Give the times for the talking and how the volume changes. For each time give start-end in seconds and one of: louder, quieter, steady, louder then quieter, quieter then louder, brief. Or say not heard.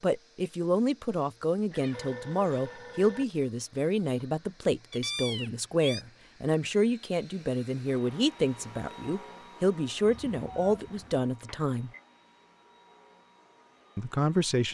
0.0-11.9 steady
13.9-14.6 brief.